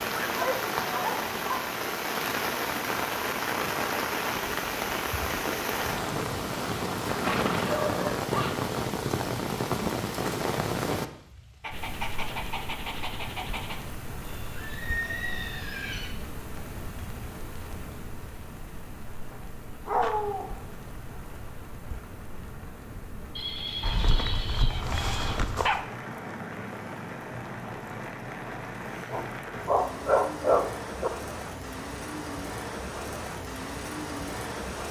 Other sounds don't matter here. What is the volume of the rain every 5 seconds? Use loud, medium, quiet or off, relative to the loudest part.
loud, loud, medium, quiet, quiet, medium, medium.